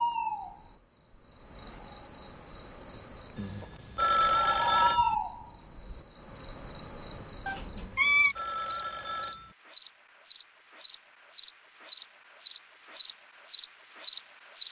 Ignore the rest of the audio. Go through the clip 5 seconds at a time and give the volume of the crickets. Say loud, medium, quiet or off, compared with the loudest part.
medium, medium, loud.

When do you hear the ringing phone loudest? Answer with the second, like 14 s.
4 s.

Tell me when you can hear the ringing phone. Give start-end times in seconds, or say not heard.
3.4-5.2, 7.7-9.6.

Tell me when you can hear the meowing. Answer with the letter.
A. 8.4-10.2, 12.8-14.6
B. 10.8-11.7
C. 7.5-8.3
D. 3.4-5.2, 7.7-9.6
C.